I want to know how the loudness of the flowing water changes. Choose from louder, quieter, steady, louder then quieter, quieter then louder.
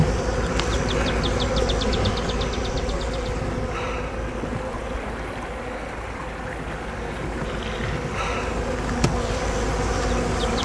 steady.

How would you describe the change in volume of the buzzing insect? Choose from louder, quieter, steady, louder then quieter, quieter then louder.
quieter then louder.